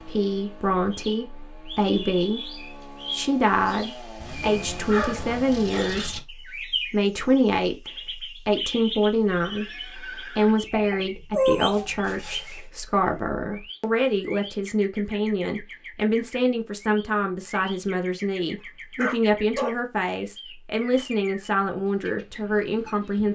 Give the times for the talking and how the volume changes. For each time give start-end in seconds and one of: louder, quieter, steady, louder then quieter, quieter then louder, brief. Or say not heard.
0.0-23.2 steady.